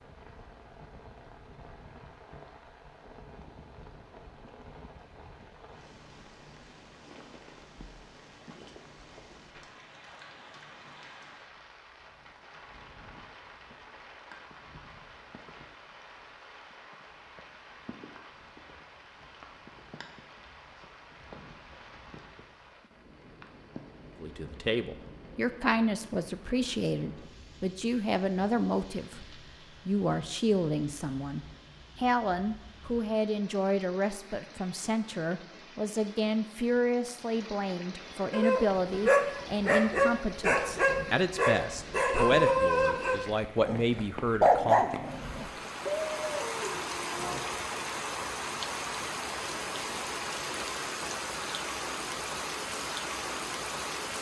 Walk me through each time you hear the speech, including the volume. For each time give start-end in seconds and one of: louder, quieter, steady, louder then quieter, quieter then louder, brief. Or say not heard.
24.2-44.9 steady.